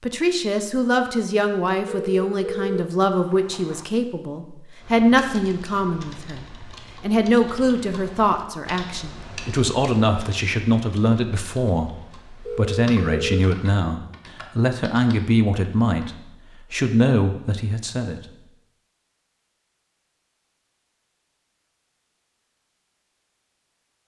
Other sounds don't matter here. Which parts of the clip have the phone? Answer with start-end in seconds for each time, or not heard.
1.9-3.9, 12.4-13.4.